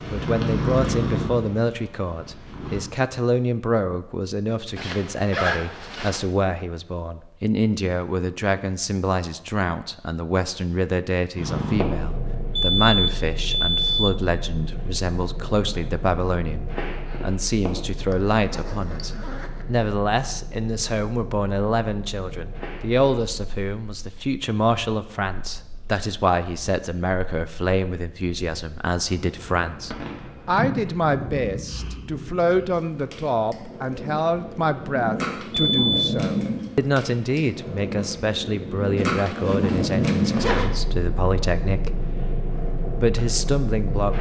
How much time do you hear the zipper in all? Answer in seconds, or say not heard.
5 s.